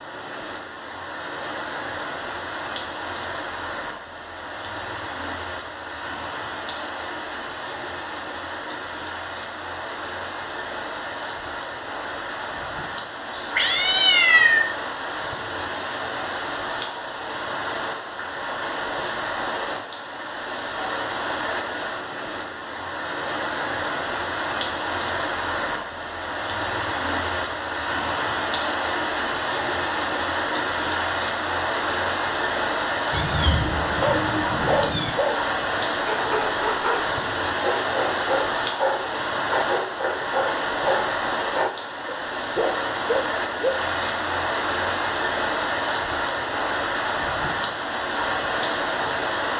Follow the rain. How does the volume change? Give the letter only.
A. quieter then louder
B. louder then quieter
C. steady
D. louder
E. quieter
D.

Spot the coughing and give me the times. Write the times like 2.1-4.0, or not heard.
not heard.